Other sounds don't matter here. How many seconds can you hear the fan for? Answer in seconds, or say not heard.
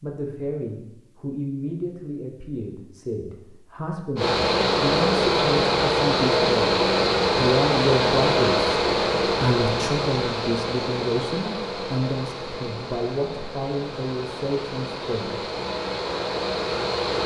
13 s.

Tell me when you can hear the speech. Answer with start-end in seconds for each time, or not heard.
0.0-15.4.